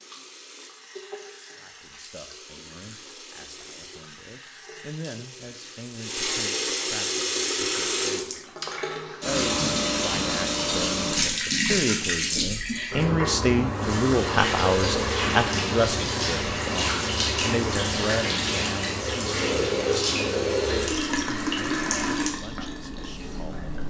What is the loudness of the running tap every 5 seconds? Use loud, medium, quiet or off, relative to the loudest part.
quiet, loud, loud, loud, loud.